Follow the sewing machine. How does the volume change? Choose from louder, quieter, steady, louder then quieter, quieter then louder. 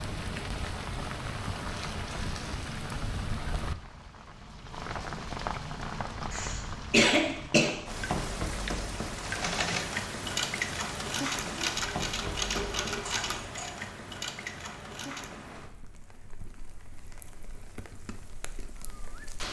quieter.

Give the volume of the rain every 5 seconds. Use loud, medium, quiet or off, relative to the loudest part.
loud, loud, loud, medium.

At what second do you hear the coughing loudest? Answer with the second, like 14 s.
7 s.